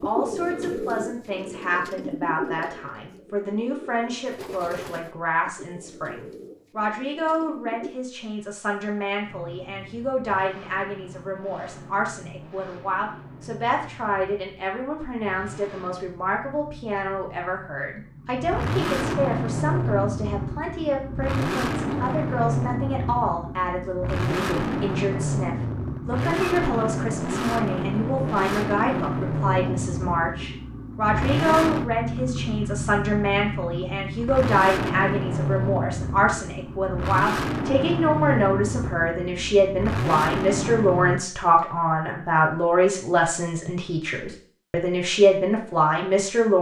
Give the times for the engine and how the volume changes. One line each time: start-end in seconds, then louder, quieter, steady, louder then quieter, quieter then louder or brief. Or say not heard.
9.2-41.2 louder.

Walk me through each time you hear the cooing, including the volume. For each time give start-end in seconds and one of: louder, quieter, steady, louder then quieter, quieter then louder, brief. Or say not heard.
0.0-8.0 quieter.